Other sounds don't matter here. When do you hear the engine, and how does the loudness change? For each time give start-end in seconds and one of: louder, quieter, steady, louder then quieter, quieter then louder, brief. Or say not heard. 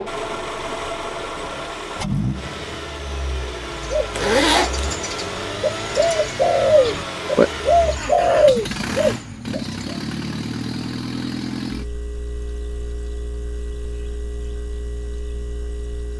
0.0-16.1 quieter.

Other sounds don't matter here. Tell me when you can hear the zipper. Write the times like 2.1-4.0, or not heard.
4.1-4.9.